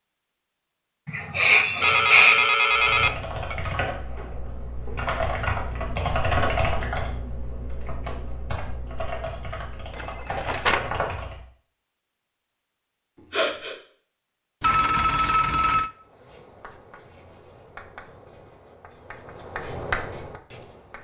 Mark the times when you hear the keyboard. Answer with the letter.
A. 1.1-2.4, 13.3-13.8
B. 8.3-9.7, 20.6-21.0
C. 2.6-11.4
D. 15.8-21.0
C.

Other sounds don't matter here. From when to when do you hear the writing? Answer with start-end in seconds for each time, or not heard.
15.8-21.0.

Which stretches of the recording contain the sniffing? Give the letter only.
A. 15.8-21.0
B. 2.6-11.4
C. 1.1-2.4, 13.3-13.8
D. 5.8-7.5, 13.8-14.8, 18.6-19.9
C.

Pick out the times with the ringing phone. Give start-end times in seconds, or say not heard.
1.8-3.5, 9.9-10.9, 14.6-15.9.